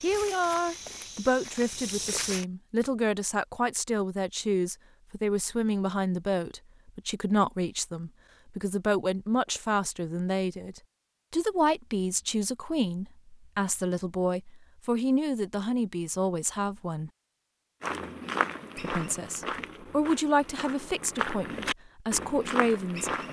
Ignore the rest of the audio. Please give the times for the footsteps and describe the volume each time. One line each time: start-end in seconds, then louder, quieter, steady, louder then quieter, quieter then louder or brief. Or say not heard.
0.0-2.5 brief
17.8-23.2 quieter then louder.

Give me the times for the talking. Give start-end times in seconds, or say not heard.
0.0-17.1, 18.8-23.1.